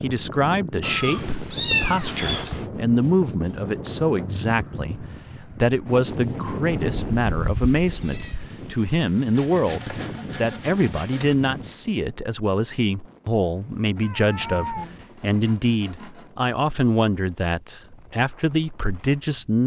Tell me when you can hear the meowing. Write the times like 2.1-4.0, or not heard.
0.8-2.6, 6.7-8.5, 13.9-15.2.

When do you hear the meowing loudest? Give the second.
2 s.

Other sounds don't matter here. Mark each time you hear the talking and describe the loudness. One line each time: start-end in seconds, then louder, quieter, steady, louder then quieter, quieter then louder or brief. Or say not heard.
0.0-19.6 steady.